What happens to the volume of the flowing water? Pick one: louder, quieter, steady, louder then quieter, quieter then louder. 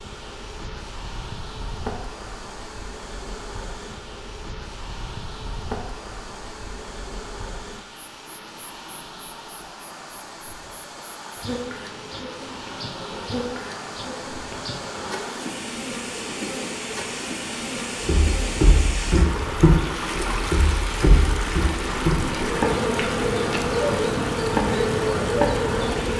louder.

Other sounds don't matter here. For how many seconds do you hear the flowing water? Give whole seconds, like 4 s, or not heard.
26 s.